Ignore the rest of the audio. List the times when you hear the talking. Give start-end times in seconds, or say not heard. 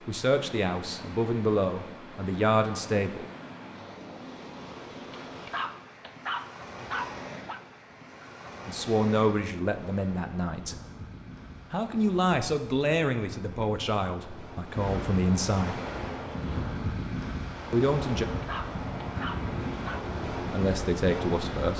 0.1-3.3, 8.7-10.8, 11.7-15.8, 17.7-18.2, 20.5-21.7.